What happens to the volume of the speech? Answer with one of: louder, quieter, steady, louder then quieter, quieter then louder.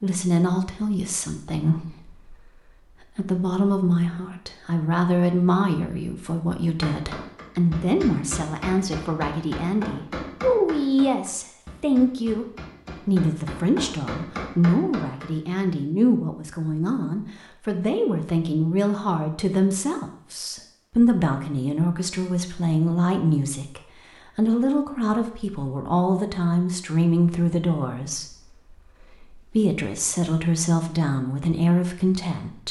steady.